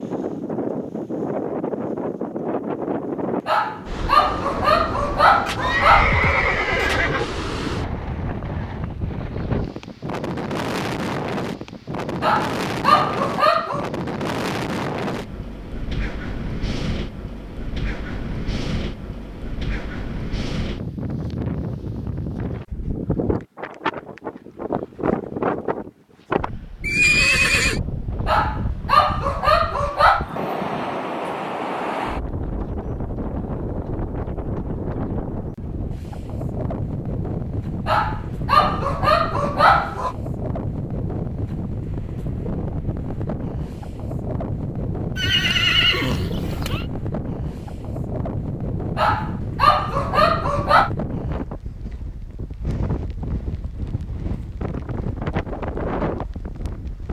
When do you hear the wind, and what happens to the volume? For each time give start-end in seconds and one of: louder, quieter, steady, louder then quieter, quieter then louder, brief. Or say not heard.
0.0-57.0 steady.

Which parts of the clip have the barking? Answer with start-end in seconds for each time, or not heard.
3.5-6.2, 12.2-13.8, 28.2-30.2, 37.9-40.1, 49.0-50.9.